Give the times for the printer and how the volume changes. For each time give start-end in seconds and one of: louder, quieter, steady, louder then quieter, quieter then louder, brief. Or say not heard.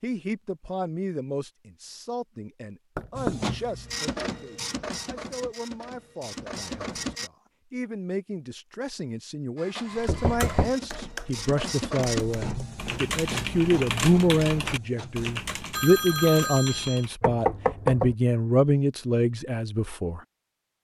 3.1-7.3 quieter then louder
9.6-15.3 louder then quieter.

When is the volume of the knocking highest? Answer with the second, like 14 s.
18 s.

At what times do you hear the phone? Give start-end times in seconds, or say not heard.
15.8-17.1.